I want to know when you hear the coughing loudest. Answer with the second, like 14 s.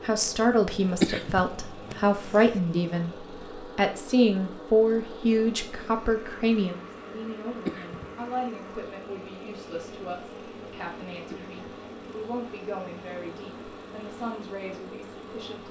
1 s.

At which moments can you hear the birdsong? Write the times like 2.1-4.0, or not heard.
not heard.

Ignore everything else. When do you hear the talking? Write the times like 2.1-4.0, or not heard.
0.0-15.6.